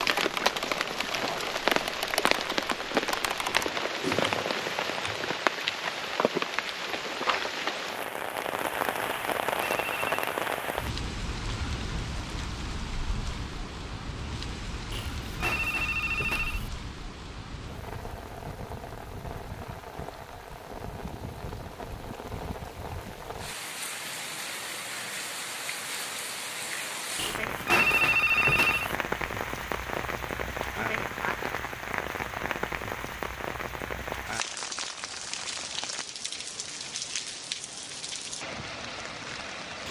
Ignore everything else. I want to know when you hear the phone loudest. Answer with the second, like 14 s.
28 s.